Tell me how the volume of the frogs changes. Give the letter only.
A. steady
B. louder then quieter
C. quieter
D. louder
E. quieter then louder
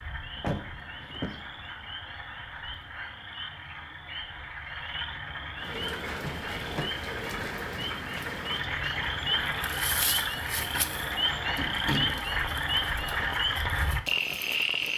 D.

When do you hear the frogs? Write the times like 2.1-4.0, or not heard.
0.0-14.9.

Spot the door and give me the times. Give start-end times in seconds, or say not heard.
0.4-1.4, 6.2-7.0, 10.7-12.3.